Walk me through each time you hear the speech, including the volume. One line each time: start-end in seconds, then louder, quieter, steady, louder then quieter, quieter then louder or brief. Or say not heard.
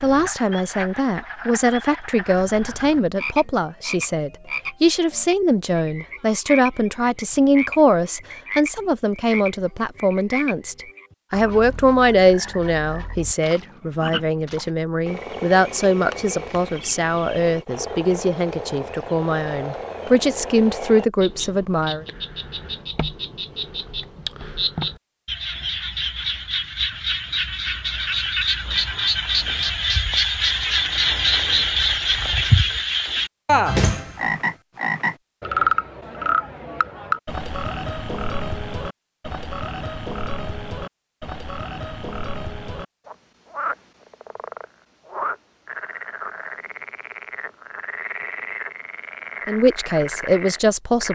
0.0-22.1 steady
49.5-51.0 brief.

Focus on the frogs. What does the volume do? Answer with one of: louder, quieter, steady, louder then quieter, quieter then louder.
louder then quieter.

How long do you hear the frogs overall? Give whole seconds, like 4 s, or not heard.
51 s.